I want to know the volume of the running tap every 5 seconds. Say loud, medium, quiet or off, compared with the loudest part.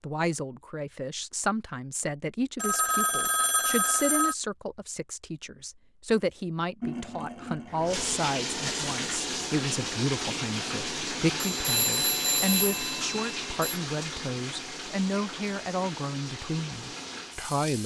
off, loud, loud, medium.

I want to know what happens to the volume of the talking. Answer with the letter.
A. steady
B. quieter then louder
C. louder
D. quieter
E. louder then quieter
A.